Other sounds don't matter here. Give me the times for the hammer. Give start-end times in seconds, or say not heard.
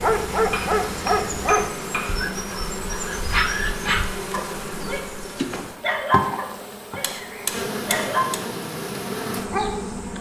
0.5-2.3, 7.0-8.4.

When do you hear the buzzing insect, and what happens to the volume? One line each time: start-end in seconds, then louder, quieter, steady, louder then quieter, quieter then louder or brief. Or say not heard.
0.0-10.1 steady.